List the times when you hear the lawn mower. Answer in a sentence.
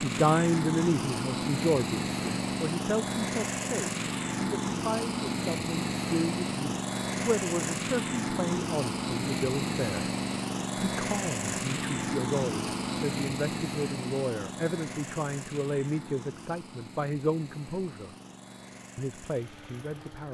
The lawn mower can be heard from 0.0 to 20.3 s.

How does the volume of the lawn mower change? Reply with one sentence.
The loudness of the lawn mower goes down.